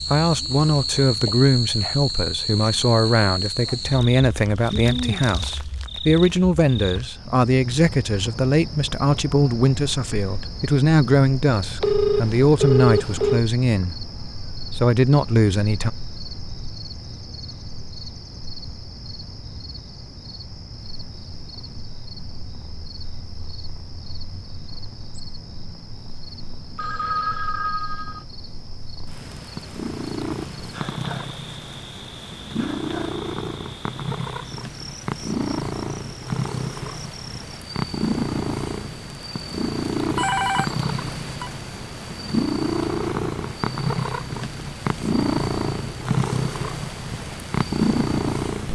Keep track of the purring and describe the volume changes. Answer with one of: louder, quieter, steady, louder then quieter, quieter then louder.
louder.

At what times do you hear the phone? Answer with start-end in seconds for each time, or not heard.
11.8-13.4, 26.8-28.2, 40.1-41.5.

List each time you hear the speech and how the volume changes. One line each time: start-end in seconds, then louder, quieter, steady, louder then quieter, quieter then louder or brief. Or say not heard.
0.0-15.9 steady.